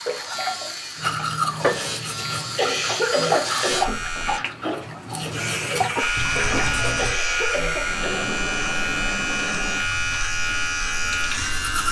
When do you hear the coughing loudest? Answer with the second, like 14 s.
3 s.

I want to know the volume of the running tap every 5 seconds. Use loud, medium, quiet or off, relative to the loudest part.
loud, loud, quiet.